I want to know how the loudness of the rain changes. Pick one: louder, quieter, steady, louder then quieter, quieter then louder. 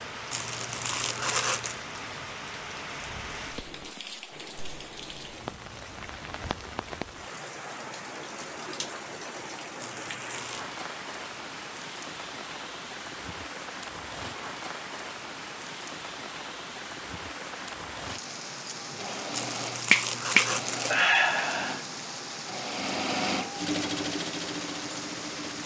steady.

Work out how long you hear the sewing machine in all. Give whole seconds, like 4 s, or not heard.
7 s.